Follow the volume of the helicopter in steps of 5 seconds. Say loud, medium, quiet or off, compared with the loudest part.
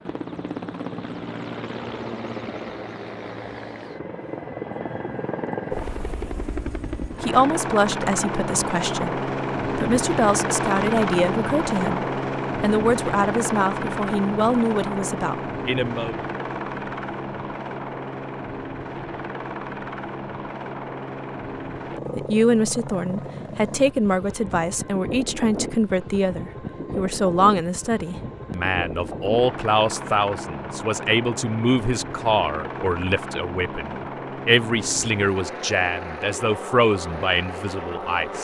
medium, loud, loud, medium, medium, medium, medium, medium.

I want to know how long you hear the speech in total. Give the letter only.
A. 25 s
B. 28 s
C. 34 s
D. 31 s
A.